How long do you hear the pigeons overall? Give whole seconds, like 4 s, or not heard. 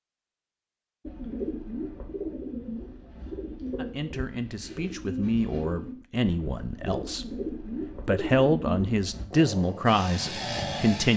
8 s.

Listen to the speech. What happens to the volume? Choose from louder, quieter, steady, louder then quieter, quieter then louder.
quieter then louder.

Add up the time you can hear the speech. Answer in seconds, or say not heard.
7 s.